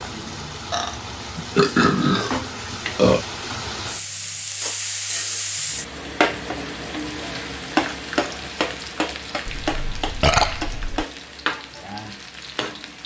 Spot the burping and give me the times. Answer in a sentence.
The burping can be heard from 0.7 to 3.2 s and from 9.4 to 11.1 s.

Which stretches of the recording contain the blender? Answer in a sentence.
You can't hear the blender here.